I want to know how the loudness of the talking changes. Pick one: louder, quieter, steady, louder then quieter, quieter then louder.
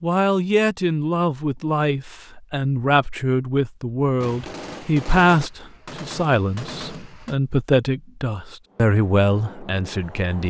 steady.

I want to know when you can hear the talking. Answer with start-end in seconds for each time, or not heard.
0.0-10.4.